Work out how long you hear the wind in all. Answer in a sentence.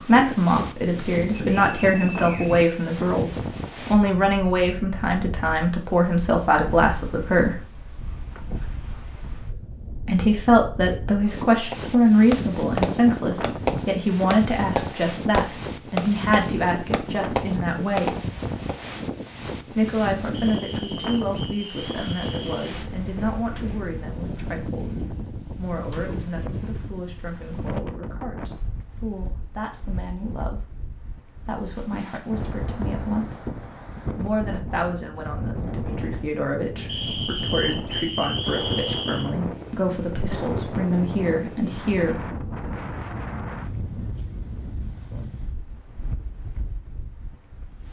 You can hear the wind for 48 seconds altogether.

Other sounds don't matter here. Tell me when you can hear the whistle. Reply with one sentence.
You can hear the whistle from 1.4 to 2.7 s, from 20.3 to 22.7 s and from 36.9 to 39.3 s.